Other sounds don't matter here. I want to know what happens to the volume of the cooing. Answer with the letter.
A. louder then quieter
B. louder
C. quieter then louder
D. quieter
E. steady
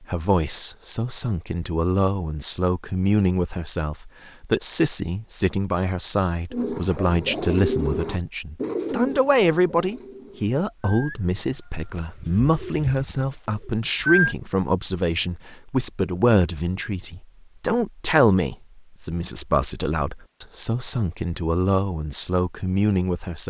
C.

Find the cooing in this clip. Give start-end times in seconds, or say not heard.
6.5-14.3.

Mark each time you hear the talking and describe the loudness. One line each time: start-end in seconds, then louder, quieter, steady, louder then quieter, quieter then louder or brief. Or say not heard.
0.0-23.4 steady.